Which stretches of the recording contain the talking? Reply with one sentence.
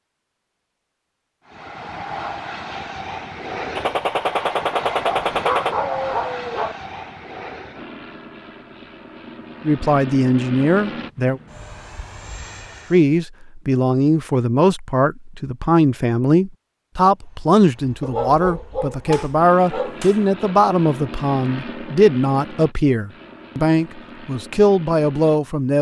You can hear the talking from 9.7 to 11.4 s and from 12.9 to 25.7 s.